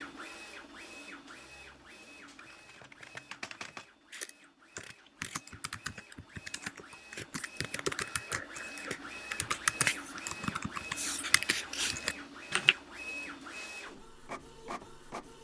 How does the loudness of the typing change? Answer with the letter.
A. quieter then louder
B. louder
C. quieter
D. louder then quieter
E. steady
B.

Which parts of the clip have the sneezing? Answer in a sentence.
You can't hear the sneezing here.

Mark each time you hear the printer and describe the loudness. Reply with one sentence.
You can hear the printer from 0.0 to 15.3 s, getting quieter then louder.